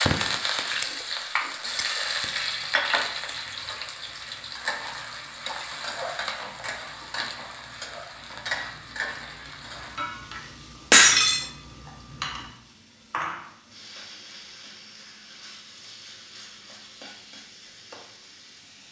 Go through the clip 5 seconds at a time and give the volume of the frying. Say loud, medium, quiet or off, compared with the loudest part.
loud, medium, medium, quiet.